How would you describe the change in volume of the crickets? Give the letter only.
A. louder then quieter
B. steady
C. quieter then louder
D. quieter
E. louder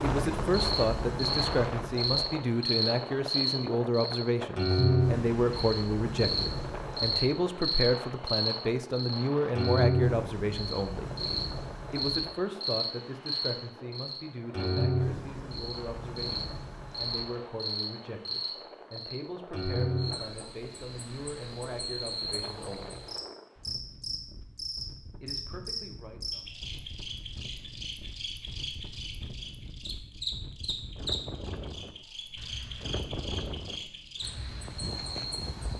D.